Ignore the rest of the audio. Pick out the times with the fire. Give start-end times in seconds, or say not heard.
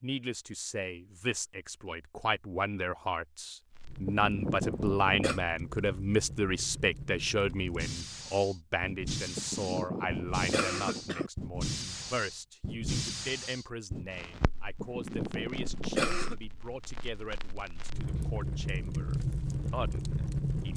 3.6-20.7.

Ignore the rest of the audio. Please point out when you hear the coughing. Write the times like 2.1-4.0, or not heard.
4.0-5.4, 9.3-11.3, 14.8-16.4.